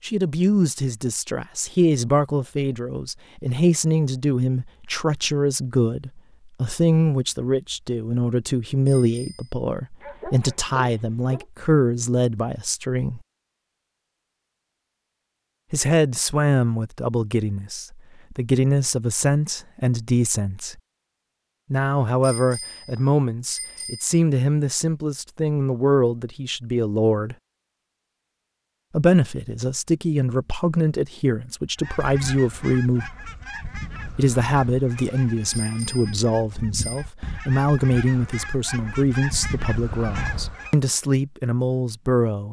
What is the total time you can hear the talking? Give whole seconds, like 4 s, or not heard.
36 s.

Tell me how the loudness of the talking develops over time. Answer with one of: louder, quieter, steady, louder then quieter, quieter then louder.
steady.